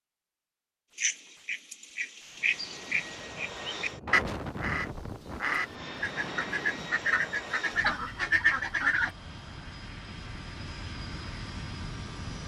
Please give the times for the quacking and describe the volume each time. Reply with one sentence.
You can hear the quacking from 0.9 to 9.1 s, getting louder.